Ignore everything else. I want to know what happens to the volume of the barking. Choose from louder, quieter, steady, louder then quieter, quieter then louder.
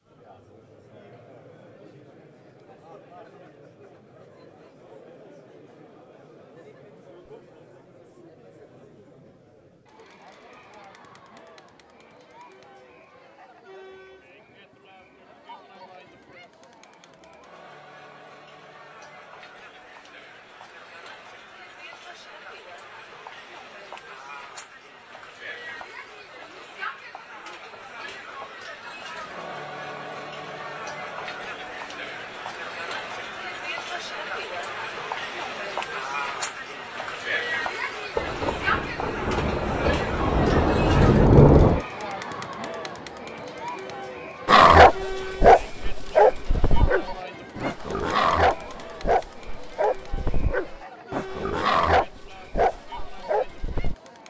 quieter.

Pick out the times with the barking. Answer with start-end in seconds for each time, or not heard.
44.5-54.0.